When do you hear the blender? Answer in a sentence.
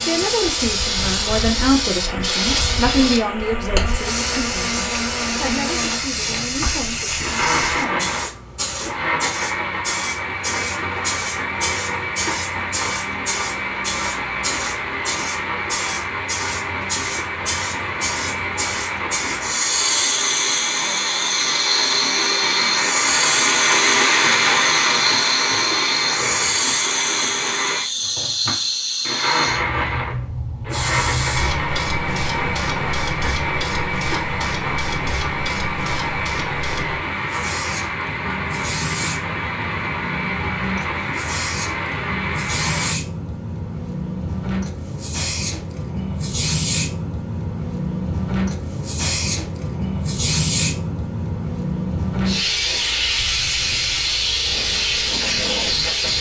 The blender can be heard from 0.0 to 43.0 s.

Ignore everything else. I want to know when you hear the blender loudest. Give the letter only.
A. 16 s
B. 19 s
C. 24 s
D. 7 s
C.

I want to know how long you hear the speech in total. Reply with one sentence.
You can hear the speech for 8 seconds altogether.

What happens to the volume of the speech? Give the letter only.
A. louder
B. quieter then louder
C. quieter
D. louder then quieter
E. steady
C.